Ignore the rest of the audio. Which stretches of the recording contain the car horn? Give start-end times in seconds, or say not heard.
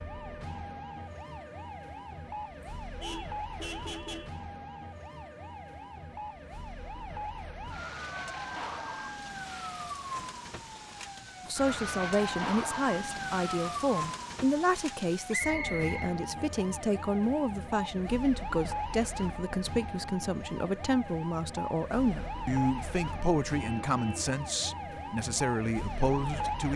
2.8-4.4, 23.6-24.4.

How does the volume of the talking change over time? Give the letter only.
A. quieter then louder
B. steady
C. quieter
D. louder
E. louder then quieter
B.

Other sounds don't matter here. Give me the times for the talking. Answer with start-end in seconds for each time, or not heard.
11.4-26.7.